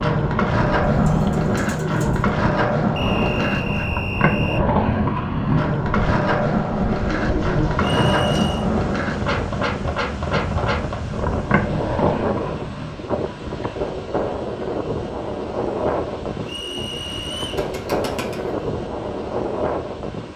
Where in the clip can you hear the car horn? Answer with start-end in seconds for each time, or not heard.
not heard.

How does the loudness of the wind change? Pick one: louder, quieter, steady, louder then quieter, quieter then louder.
steady.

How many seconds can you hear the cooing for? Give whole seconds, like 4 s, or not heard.
5 s.